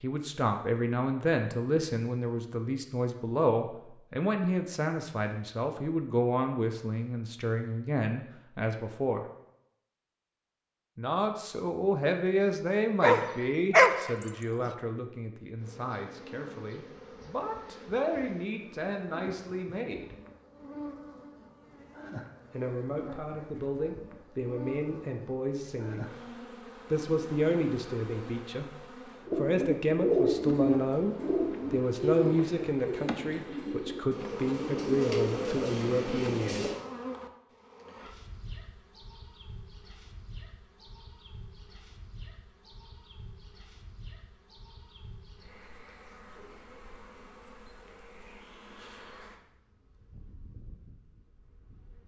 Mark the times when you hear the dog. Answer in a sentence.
You can hear the dog from 13.0 to 14.7 s.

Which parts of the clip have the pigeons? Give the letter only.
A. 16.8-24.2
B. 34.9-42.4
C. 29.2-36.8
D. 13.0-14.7
C.